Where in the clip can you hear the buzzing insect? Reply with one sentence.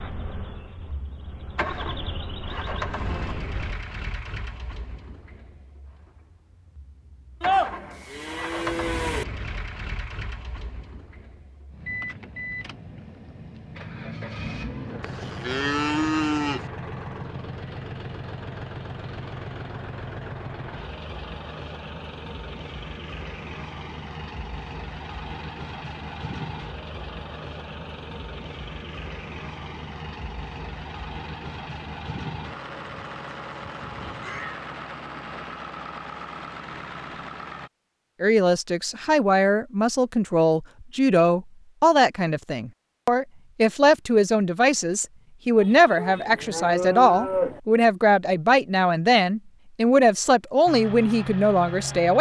You can hear the buzzing insect from 0.0 to 3.8 s.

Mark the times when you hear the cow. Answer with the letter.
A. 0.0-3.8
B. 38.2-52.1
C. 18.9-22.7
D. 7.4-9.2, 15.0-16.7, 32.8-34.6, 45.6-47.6
D.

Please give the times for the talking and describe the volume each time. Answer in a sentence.
You can hear the talking from 38.2 to 52.1 s, at a steady volume.